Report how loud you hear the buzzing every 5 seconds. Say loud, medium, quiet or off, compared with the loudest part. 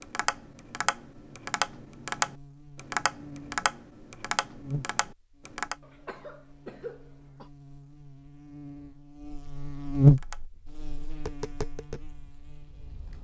quiet, quiet, loud.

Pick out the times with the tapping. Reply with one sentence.
The tapping can be heard from 0.0 to 5.8 s and from 10.2 to 13.2 s.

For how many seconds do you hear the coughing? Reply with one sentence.
The coughing can be heard for 2 seconds in total.